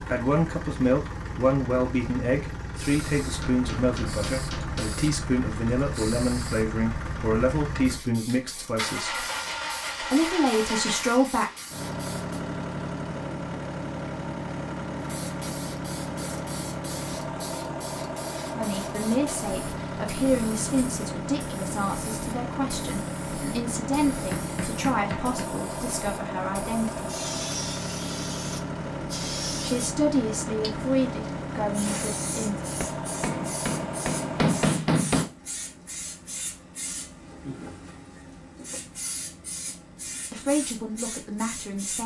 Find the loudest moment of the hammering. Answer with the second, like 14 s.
35 s.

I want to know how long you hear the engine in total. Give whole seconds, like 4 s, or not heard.
35 s.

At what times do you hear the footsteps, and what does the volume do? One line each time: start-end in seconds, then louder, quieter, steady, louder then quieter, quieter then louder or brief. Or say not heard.
not heard.